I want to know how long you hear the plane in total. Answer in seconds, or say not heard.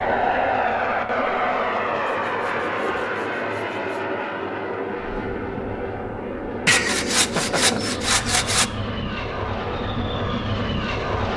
11 s.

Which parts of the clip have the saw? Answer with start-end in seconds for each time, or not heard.
2.0-4.0, 6.7-8.7.